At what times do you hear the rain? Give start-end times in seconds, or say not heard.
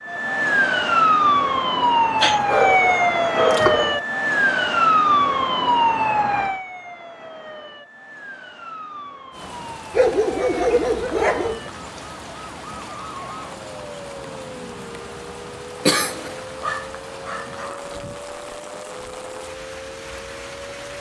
9.3-20.9.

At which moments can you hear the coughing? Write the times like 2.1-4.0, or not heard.
15.8-16.4.